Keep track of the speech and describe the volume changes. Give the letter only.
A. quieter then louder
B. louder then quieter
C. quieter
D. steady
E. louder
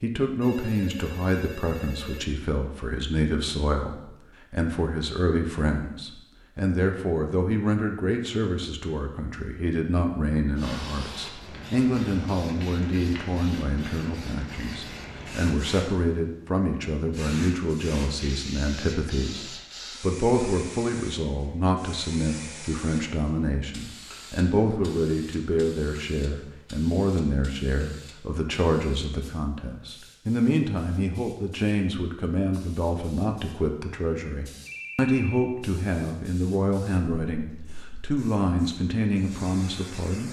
D.